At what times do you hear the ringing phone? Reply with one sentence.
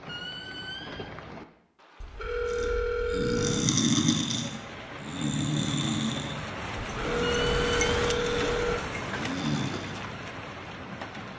The ringing phone can be heard from 2.0 to 3.7 s and from 6.9 to 8.8 s.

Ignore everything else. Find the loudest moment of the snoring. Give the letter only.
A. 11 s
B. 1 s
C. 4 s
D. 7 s
C.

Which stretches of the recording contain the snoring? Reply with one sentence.
You can hear the snoring from 2.5 to 10.1 s.